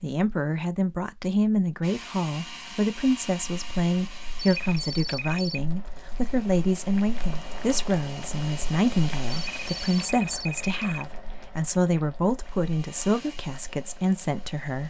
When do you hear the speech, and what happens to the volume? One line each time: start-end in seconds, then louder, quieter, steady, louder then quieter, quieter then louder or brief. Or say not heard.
0.0-14.8 steady.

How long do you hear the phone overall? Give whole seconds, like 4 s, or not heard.
3 s.